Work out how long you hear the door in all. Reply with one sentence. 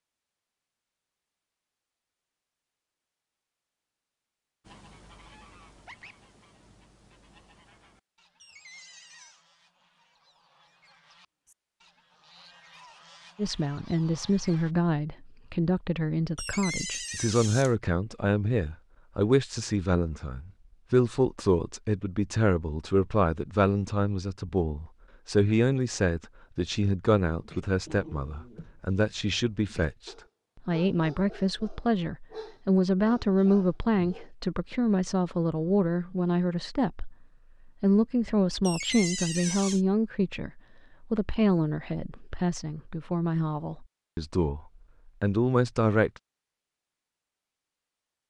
You can hear the door for 4 seconds altogether.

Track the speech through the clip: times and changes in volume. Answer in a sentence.
The speech can be heard from 13.3 to 46.1 s, at a steady volume.